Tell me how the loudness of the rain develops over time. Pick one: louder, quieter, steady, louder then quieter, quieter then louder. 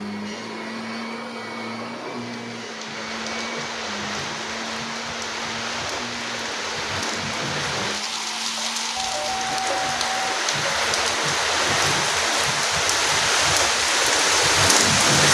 louder.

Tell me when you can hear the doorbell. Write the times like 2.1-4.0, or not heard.
8.9-10.4.